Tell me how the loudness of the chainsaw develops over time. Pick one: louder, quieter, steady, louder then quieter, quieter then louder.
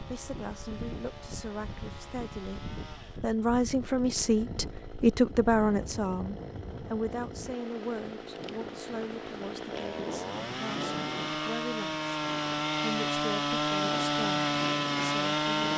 louder.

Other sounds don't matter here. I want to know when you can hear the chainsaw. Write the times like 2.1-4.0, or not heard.
0.0-15.7.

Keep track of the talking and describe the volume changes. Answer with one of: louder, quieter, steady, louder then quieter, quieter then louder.
louder then quieter.